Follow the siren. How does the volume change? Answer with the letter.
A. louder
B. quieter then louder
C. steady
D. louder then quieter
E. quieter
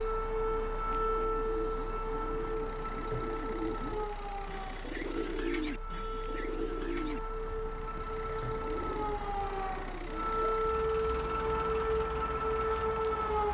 B.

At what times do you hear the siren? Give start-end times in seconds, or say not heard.
0.0-13.4.